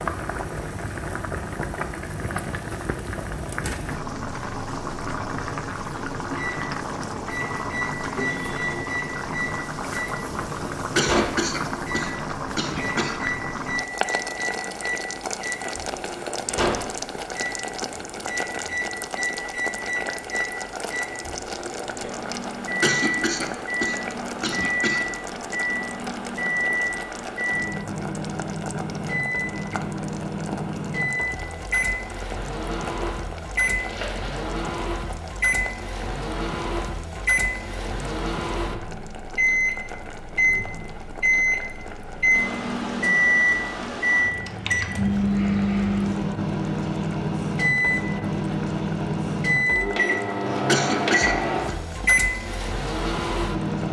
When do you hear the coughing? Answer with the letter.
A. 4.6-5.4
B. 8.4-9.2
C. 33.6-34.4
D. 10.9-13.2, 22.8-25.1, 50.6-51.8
D.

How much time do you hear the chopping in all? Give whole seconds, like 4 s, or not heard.
not heard.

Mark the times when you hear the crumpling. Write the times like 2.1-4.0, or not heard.
33.6-34.4.